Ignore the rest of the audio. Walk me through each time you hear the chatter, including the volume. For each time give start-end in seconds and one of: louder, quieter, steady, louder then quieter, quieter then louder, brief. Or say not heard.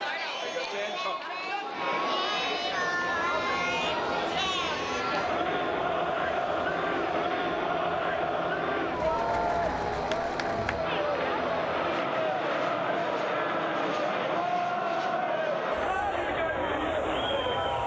0.0-17.8 steady.